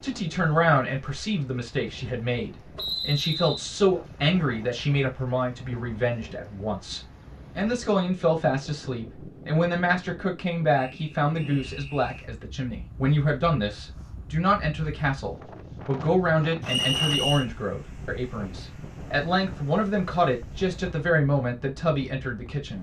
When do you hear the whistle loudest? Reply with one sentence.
The loudest moment of the whistle is at 17 seconds.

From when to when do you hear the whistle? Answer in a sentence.
You can hear the whistle from 2.8 to 3.7 s, from 10.7 to 12.2 s and from 16.6 to 17.4 s.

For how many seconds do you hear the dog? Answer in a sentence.
You can't hear the dog here.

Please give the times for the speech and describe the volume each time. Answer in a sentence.
You can hear the speech from 0.0 to 22.7 s, at a steady volume.